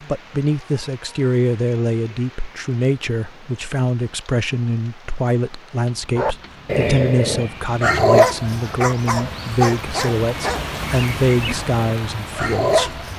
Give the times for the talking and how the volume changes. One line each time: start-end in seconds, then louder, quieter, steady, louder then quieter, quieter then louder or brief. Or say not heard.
0.1-13.1 steady.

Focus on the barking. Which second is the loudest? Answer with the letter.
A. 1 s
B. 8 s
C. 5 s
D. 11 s
B.